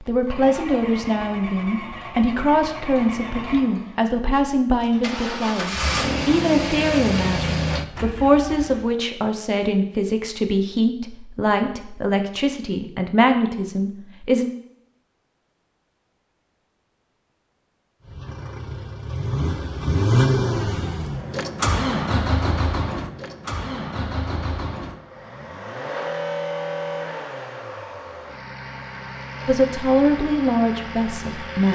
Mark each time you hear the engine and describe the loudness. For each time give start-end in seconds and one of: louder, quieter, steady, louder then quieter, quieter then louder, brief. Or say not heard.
0.2-8.9 louder
18.1-31.6 quieter.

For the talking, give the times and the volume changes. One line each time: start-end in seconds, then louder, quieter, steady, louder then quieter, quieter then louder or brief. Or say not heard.
0.0-14.5 steady
29.4-31.6 brief.